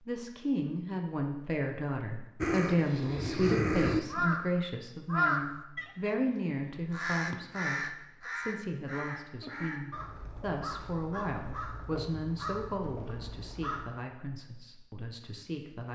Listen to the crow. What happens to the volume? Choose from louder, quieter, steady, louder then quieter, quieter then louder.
quieter.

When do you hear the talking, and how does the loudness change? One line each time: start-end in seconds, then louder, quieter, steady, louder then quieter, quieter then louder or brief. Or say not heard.
0.0-15.9 quieter.